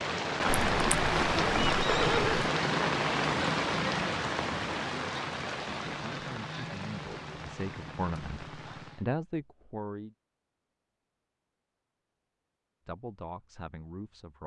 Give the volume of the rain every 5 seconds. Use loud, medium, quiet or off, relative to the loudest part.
loud, medium, off.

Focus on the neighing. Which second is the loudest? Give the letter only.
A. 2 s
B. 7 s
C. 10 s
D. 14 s
A.